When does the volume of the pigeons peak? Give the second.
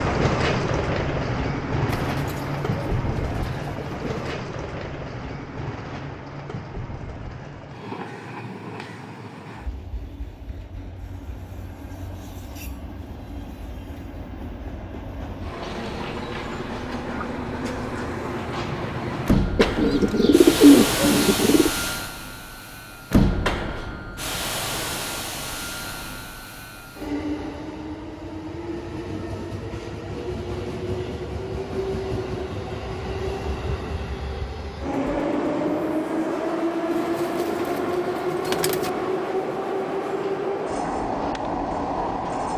21 s.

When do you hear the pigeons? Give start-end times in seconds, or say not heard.
1.9-4.3, 19.6-21.7, 36.9-38.9.